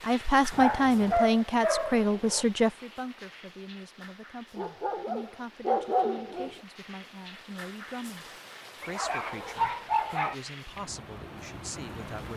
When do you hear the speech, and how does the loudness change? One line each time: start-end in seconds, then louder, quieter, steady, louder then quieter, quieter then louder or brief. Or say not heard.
0.0-12.3 quieter.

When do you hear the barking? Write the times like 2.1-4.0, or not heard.
0.5-2.5, 4.5-6.5, 8.8-10.3.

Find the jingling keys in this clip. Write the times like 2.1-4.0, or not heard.
not heard.